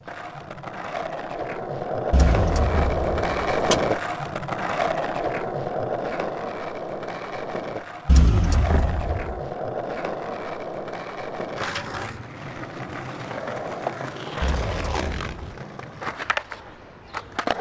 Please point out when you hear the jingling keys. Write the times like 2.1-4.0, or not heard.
2.1-3.9, 8.1-9.4, 14.4-15.4.